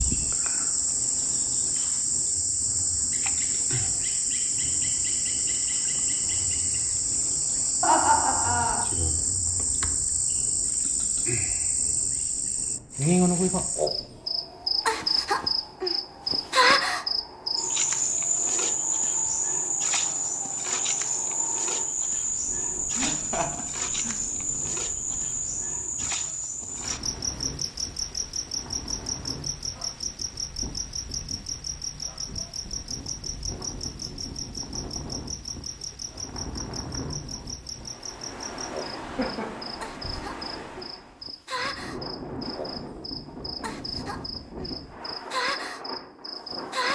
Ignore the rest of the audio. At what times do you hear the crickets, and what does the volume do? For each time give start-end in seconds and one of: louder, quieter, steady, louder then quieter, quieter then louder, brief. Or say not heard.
0.0-46.9 quieter.